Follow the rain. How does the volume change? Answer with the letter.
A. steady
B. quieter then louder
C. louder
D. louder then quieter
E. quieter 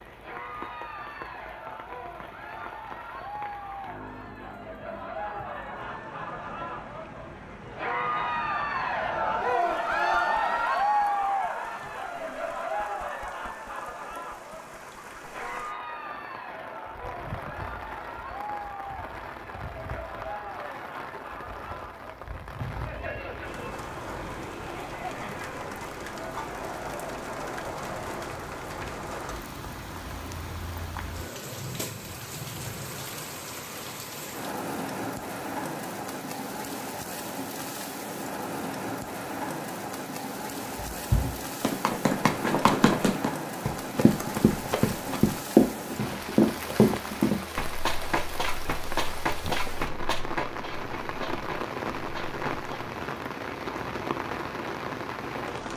C.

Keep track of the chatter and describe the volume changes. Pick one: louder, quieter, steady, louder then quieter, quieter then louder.
louder then quieter.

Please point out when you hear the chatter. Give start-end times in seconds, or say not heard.
0.1-28.3.